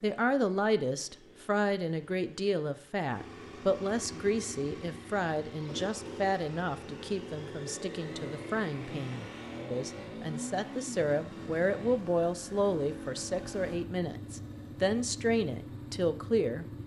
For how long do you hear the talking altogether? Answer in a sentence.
You can hear the talking for 17 seconds altogether.